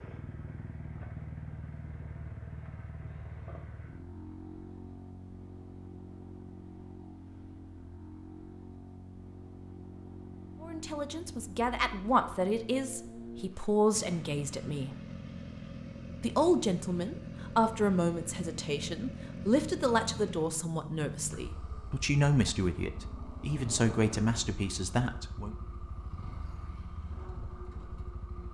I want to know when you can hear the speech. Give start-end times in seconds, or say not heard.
10.6-14.9, 16.2-25.6.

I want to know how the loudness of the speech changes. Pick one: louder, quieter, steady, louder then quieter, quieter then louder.
steady.